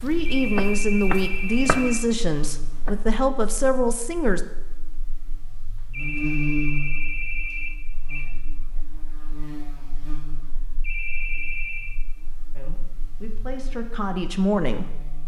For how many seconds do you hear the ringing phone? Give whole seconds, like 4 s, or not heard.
5 s.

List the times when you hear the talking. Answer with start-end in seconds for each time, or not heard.
0.0-4.4, 12.5-15.2.